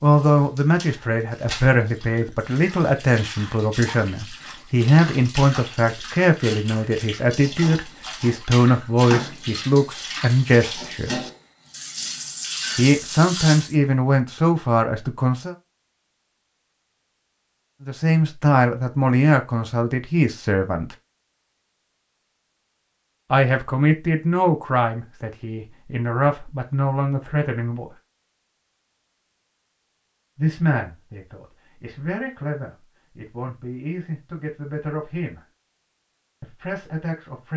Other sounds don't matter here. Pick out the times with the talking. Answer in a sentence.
The talking can be heard from 0.0 to 11.3 s, from 12.8 to 15.6 s, from 17.9 to 20.9 s, from 23.3 to 27.9 s, from 30.4 to 35.4 s and from 36.4 to 37.5 s.